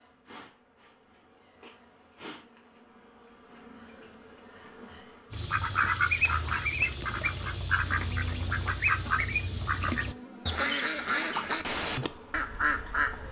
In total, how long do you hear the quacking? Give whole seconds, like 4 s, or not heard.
8 s.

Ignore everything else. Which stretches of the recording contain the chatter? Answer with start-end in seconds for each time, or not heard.
not heard.